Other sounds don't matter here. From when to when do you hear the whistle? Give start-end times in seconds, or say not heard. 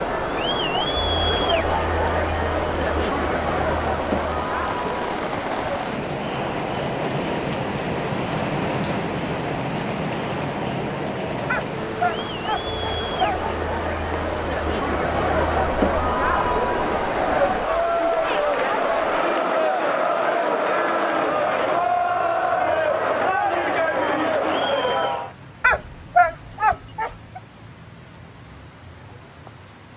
not heard.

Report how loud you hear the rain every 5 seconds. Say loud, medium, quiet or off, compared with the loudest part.
medium, loud, loud, quiet, quiet, quiet.